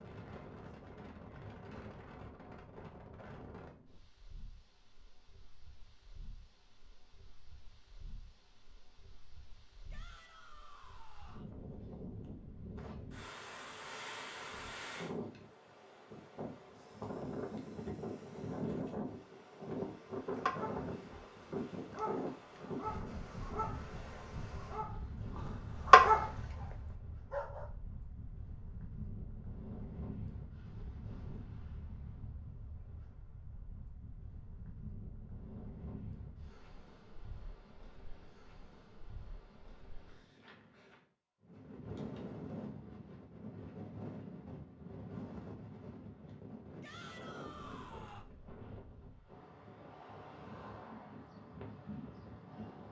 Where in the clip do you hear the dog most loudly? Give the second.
26 s.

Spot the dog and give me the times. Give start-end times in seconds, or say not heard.
20.4-27.7.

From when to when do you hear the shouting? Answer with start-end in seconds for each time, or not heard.
9.9-11.5, 46.8-48.2.